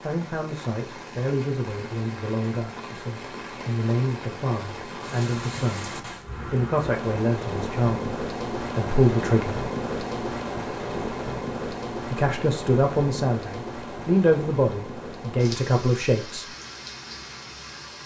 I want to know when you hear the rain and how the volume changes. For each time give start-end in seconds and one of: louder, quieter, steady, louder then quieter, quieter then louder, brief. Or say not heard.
0.0-18.0 louder then quieter.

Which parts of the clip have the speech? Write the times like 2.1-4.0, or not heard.
0.0-9.7, 12.1-16.4.